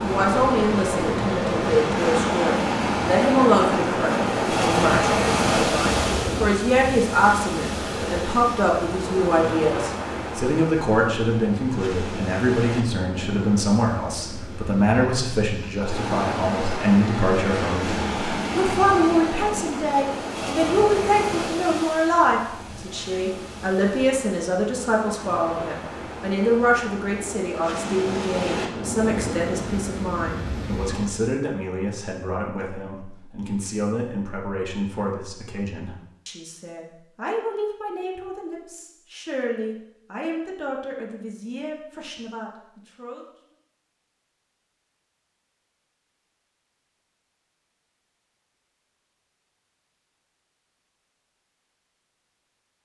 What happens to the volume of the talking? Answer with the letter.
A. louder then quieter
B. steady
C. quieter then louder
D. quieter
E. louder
D.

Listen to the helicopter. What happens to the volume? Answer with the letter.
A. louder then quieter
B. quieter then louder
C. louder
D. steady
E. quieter
D.